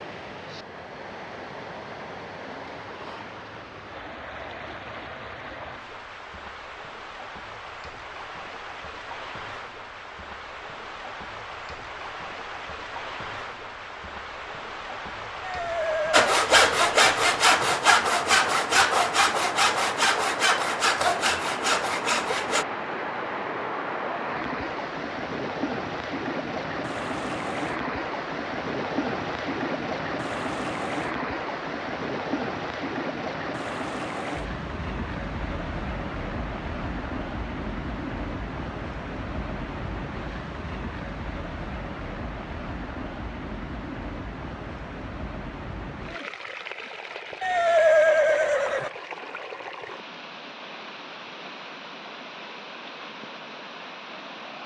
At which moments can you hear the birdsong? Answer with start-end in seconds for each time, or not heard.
not heard.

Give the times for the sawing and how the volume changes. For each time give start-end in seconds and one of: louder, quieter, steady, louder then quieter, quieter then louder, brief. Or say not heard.
16.1-22.6 quieter.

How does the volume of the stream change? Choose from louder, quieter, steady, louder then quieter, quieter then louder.
louder then quieter.